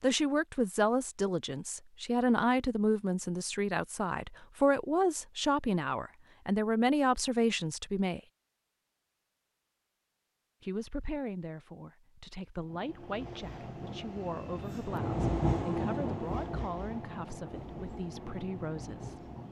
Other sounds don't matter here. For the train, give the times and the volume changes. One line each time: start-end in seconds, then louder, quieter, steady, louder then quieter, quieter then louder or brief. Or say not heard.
12.6-19.4 louder then quieter.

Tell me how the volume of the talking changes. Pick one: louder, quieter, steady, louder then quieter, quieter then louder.
quieter.